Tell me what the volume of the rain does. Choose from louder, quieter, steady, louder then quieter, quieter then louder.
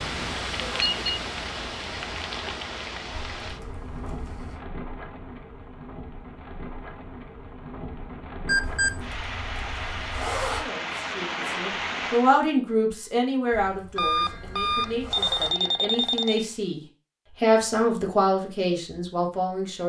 quieter then louder.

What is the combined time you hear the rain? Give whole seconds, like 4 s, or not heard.
12 s.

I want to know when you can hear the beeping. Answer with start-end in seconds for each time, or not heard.
0.6-1.2, 8.4-8.9, 13.9-16.4.